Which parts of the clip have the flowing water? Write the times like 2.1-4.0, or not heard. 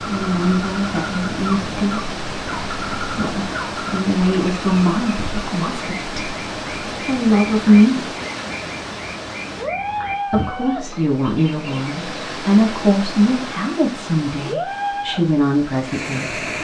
0.0-16.5.